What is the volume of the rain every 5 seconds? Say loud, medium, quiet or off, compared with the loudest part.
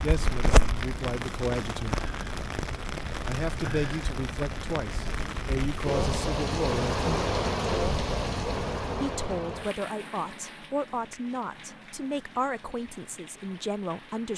loud, loud, quiet.